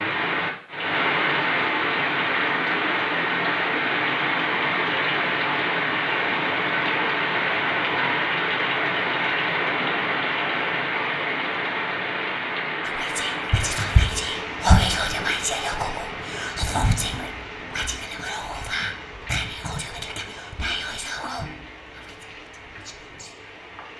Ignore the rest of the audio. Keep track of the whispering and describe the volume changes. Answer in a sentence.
The volume of the whispering goes down.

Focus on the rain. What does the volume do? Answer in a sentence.
The volume of the rain goes down.